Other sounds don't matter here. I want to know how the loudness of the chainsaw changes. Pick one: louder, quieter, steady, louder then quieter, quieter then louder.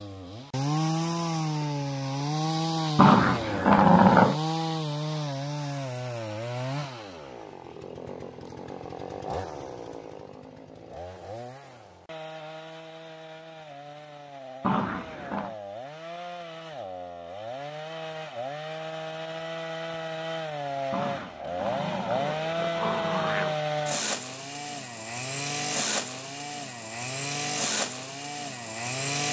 quieter then louder.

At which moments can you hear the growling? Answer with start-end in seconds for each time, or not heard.
3.0-4.4, 14.6-15.6, 20.9-23.6.